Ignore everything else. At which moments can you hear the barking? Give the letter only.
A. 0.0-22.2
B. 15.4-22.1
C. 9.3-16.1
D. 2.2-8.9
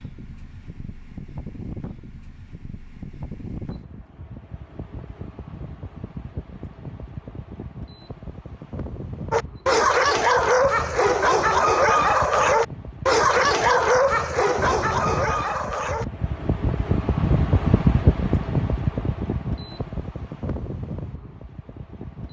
C.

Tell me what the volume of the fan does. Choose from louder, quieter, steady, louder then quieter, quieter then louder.
louder.